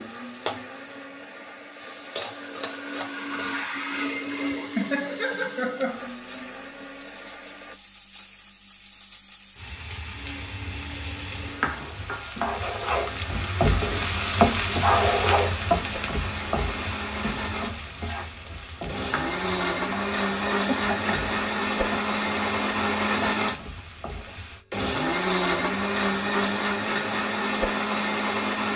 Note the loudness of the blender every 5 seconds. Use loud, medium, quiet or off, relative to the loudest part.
medium, quiet, quiet, medium, loud, loud.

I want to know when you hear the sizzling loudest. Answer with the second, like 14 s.
15 s.